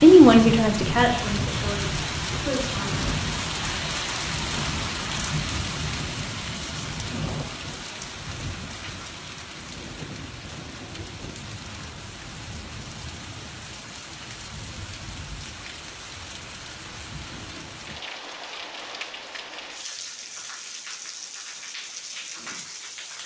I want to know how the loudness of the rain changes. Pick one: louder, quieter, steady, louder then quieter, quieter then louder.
quieter.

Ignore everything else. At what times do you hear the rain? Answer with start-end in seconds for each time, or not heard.
0.0-23.2.